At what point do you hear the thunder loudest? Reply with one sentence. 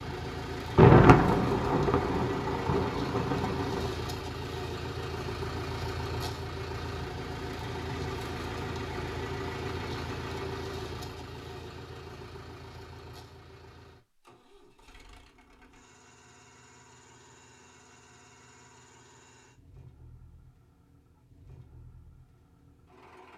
The loudest moment of the thunder is at 1 second.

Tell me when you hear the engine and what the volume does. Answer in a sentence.
The engine can be heard from 0.0 to 23.3 s, getting quieter.